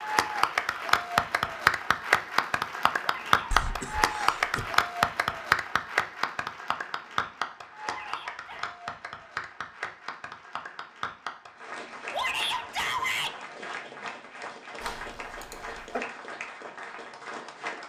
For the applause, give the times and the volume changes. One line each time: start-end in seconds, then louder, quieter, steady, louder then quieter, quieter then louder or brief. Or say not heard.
0.0-17.8 quieter.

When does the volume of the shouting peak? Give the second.
13 s.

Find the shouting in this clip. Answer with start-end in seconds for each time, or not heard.
3.0-3.6, 7.8-8.8, 12.1-13.3.